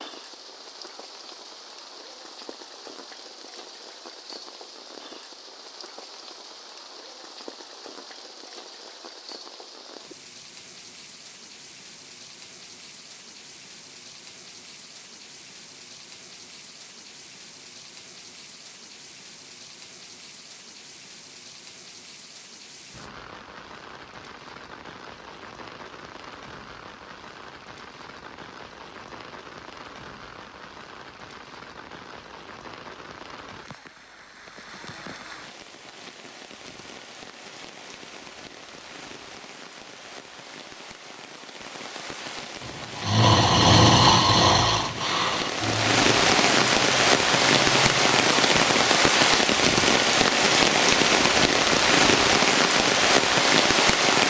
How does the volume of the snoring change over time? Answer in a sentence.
The loudness of the snoring goes down.